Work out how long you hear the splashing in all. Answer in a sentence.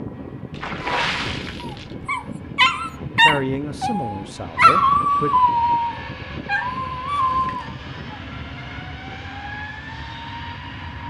The splashing can be heard for 2 seconds in total.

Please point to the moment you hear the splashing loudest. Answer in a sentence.
The loudest moment of the splashing is at 1 second.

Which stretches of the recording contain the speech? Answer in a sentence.
The speech can be heard from 3.2 to 5.3 s.